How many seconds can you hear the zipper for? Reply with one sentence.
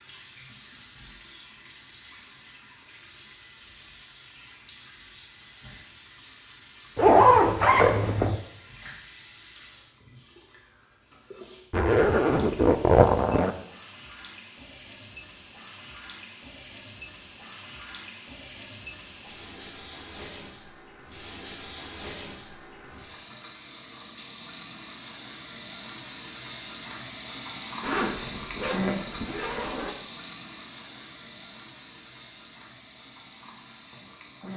The zipper can be heard for 5 seconds in total.